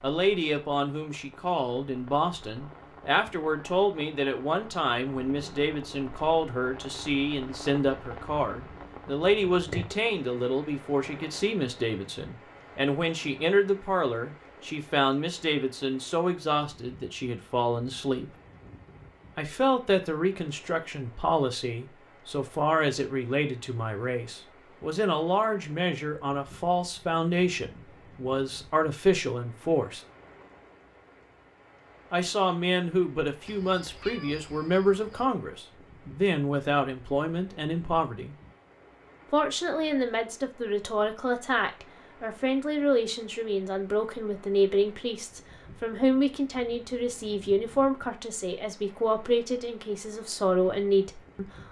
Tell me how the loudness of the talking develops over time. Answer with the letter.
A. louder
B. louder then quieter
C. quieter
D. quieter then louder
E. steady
E.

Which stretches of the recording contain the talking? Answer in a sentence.
The talking can be heard from 0.0 to 18.3 s, from 19.4 to 30.0 s, from 32.1 to 38.4 s and from 39.3 to 51.5 s.